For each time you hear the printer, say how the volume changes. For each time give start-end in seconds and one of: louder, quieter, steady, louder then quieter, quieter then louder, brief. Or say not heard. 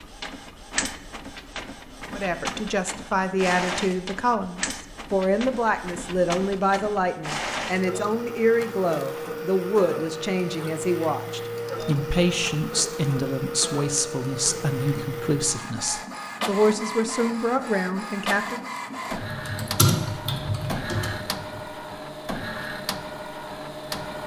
0.0-24.2 steady.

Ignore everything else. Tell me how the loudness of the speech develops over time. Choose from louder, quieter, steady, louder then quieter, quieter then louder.
steady.